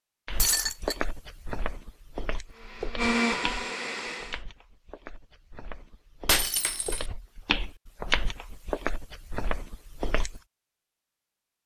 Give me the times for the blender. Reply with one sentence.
The blender can be heard from 2.5 to 4.4 s.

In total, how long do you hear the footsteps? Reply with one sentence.
You can hear the footsteps for 10 seconds altogether.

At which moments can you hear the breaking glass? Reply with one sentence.
You can hear the breaking glass from 0.3 to 0.9 s and from 6.2 to 7.0 s.